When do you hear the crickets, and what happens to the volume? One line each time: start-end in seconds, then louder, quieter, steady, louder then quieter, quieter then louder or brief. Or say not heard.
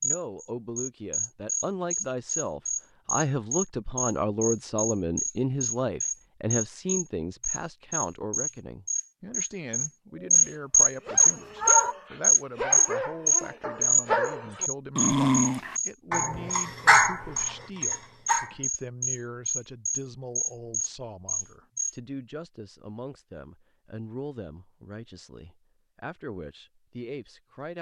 0.0-21.9 louder then quieter.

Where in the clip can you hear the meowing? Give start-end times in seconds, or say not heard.
11.1-11.9.